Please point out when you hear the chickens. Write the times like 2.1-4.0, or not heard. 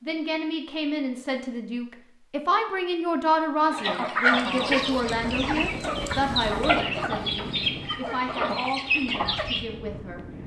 3.7-9.7.